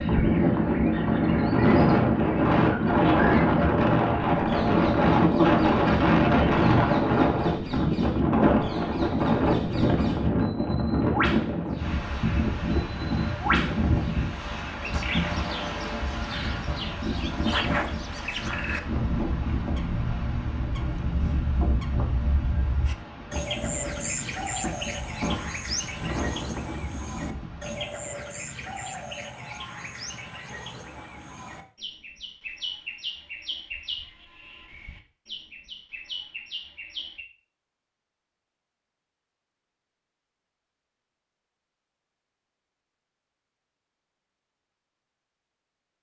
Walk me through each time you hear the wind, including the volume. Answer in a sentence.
You can hear the wind from 0.0 to 27.9 s, getting quieter.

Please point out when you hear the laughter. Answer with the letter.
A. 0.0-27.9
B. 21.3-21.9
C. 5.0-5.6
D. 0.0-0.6
C.